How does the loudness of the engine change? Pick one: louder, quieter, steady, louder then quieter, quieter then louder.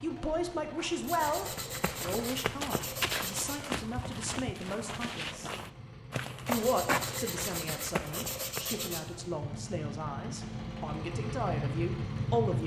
louder.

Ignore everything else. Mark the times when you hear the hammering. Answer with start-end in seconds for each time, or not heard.
not heard.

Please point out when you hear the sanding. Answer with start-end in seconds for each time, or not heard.
1.0-3.6, 6.5-9.3.